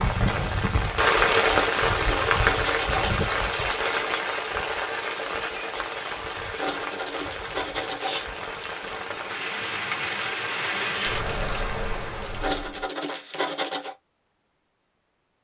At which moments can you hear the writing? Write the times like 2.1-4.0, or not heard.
1.4-3.1, 6.5-8.2, 12.4-13.9.